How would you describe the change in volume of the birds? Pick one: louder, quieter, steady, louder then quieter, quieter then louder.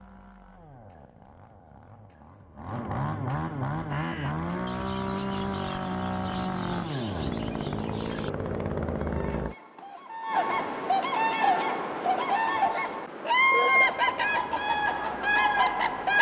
louder.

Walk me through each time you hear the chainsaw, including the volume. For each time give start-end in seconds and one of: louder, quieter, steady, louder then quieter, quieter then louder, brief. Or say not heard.
0.0-9.6 louder
13.7-16.1 brief.